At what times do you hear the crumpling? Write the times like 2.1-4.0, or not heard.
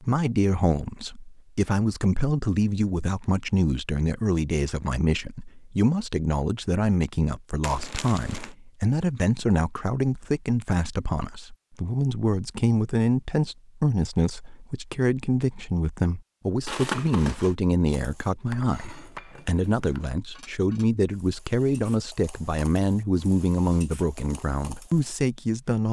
7.6-8.5, 16.6-17.6.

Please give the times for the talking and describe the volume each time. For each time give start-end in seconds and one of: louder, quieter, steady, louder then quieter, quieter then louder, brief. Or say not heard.
0.0-25.8 steady.